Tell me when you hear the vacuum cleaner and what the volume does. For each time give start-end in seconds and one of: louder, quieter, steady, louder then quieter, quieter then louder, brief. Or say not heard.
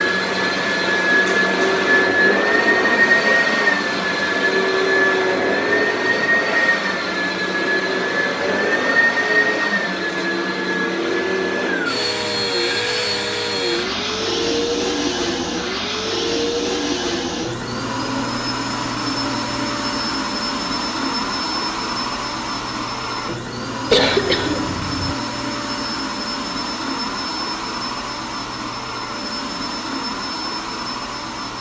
0.0-31.5 quieter.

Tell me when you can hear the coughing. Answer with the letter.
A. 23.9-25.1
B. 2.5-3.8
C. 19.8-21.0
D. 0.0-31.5
A.